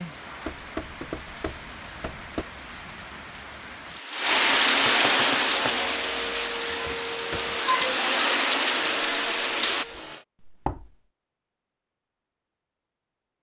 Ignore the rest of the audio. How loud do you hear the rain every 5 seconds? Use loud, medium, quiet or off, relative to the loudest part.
loud, loud, off.